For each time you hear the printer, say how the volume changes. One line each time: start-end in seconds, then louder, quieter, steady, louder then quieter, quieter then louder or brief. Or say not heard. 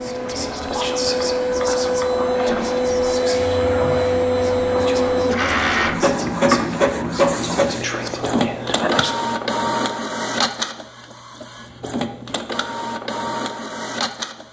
0.0-14.4 quieter.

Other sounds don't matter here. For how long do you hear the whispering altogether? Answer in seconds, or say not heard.
9 s.